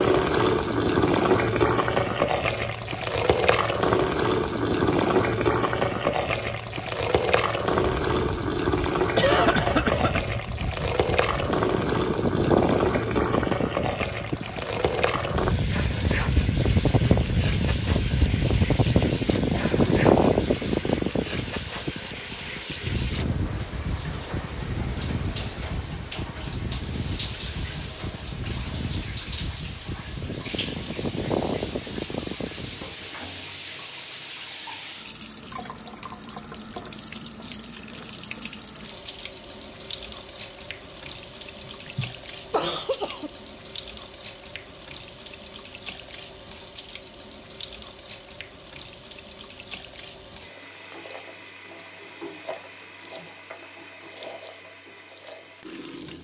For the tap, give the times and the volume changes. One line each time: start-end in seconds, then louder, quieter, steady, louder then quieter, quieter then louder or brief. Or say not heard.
0.0-56.1 quieter.